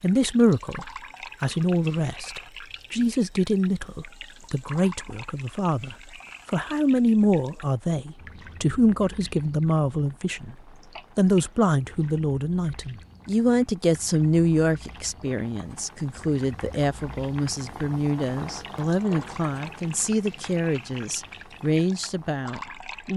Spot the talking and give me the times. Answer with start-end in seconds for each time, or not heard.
0.0-10.6, 11.2-23.1.